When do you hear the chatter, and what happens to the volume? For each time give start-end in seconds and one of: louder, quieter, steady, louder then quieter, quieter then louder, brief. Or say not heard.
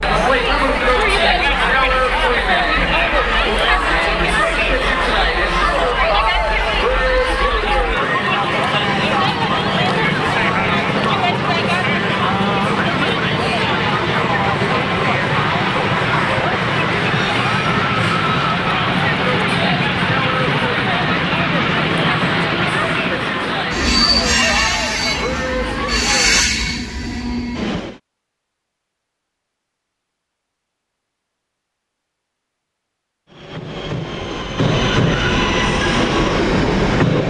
0.0-26.4 quieter.